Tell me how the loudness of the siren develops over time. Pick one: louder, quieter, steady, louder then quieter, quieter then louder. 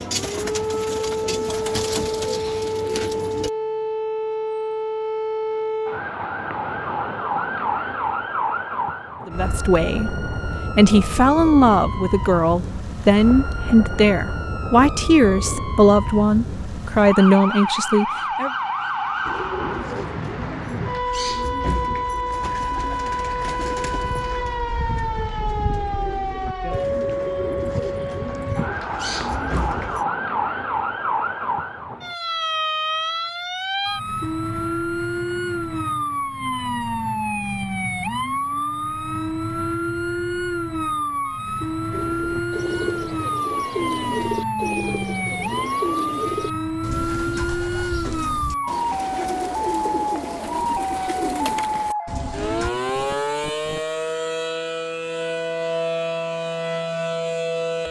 steady.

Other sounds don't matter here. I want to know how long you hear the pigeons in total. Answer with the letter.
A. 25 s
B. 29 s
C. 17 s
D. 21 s
A.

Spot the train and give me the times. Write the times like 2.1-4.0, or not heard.
not heard.